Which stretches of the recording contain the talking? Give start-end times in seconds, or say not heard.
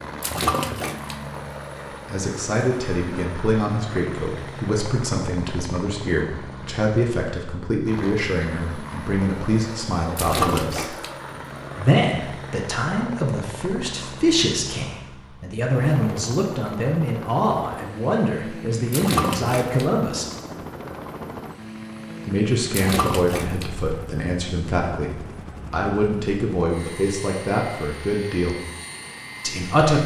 2.0-10.9, 11.8-20.2, 22.2-28.6, 29.4-30.0.